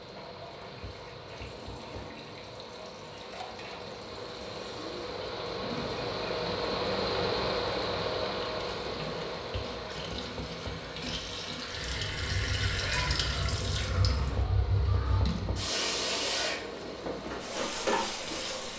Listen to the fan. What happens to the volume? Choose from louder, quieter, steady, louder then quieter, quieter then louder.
louder then quieter.